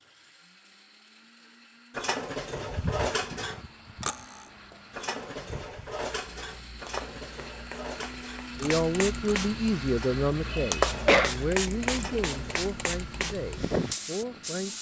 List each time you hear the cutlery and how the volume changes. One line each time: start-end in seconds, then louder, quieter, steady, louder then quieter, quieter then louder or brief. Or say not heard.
1.9-12.7 quieter.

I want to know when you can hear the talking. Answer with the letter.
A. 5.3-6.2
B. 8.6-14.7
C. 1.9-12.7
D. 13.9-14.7
B.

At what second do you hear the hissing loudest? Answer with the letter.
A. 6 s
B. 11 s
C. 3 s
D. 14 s
B.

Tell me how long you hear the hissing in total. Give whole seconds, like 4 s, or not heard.
12 s.